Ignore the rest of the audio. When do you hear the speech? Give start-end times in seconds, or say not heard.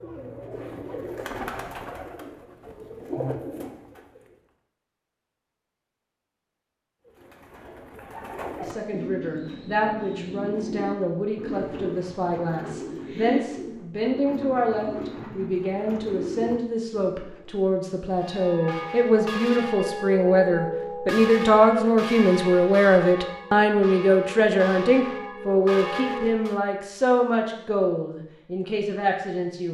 8.6-29.7.